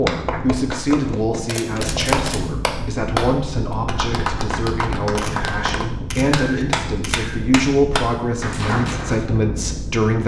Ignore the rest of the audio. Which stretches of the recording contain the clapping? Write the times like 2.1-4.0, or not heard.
0.1-9.2.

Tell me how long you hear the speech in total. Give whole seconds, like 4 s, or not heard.
10 s.